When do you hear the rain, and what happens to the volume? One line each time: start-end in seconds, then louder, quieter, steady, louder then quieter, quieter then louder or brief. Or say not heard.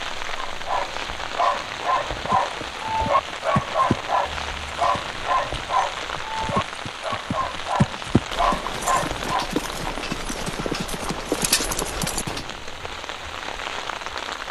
0.0-14.4 steady.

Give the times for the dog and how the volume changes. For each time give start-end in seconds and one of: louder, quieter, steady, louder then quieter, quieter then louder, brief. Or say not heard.
0.3-9.5 steady.